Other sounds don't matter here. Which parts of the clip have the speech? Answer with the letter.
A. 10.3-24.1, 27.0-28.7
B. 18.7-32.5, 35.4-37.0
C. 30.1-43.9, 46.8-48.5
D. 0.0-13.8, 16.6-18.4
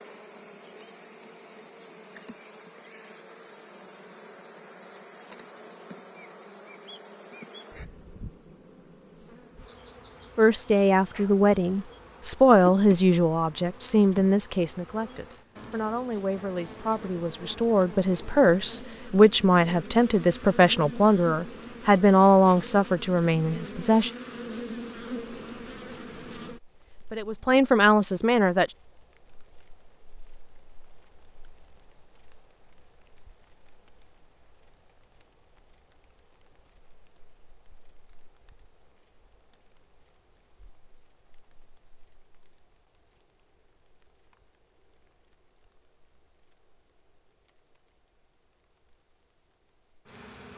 A.